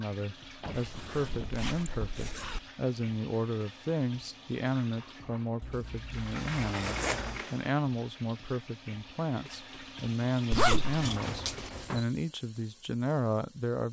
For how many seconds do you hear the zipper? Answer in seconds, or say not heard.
4 s.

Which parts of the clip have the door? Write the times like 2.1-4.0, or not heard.
0.6-1.6, 6.1-7.7, 11.0-12.1.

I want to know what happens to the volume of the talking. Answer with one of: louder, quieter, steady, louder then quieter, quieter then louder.
steady.